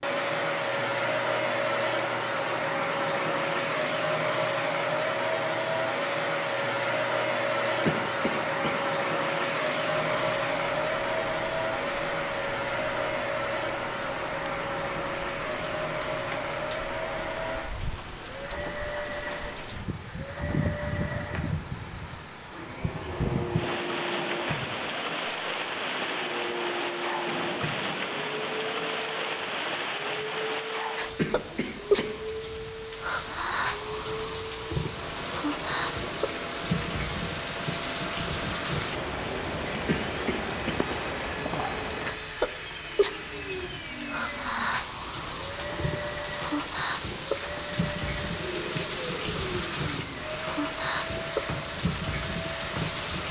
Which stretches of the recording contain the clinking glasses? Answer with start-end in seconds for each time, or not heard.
not heard.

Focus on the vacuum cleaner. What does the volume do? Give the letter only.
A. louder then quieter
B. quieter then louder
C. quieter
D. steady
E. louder
C.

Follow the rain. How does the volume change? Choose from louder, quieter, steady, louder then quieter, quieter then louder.
louder.